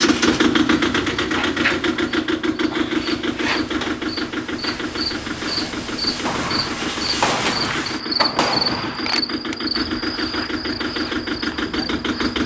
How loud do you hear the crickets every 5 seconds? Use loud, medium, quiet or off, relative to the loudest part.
loud, loud, medium.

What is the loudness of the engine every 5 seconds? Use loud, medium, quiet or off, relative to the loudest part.
loud, medium, loud.